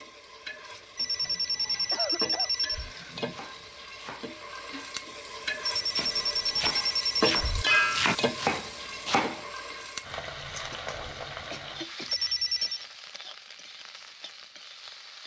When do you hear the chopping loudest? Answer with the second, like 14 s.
8 s.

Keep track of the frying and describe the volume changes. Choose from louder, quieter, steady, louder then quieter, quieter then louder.
louder then quieter.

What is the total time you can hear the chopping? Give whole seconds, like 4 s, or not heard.
6 s.